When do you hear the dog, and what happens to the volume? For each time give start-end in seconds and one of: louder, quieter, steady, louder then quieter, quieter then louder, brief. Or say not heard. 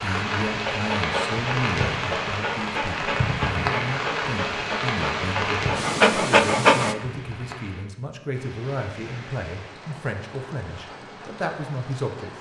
0.6-7.0 louder.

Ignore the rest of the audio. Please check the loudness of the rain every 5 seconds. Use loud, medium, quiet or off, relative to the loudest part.
loud, medium, quiet.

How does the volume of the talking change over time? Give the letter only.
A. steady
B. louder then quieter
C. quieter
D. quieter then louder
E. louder
A.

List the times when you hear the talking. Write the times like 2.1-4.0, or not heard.
0.0-12.3.